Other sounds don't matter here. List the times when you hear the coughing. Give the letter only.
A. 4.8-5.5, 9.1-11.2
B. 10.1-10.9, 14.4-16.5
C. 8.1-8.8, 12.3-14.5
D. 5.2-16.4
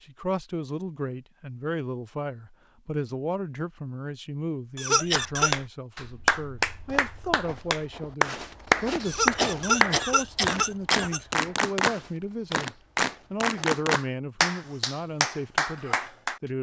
A.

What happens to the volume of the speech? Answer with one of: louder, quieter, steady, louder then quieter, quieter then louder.
steady.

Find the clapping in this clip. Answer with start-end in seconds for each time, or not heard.
5.2-16.4.